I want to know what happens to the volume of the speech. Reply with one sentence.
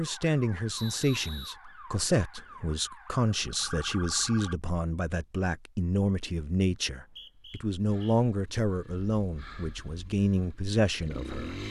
The loudness of the speech stays about the same.